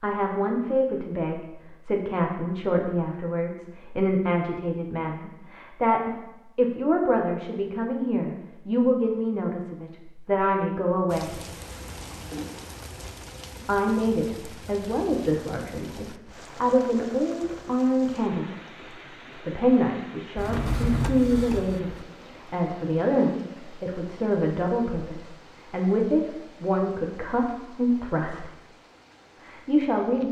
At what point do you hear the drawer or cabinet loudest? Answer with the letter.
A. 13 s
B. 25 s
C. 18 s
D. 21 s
D.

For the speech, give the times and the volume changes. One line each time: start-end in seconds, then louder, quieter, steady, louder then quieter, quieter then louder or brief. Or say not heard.
0.0-11.4 steady
13.7-28.5 steady
29.4-30.2 brief.